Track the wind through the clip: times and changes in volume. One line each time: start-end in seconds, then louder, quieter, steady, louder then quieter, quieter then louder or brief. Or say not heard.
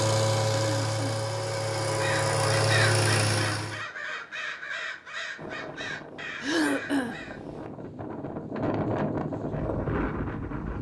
5.3-10.7 louder.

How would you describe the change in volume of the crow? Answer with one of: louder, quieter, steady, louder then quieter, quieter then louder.
quieter.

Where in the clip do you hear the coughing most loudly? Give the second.
7 s.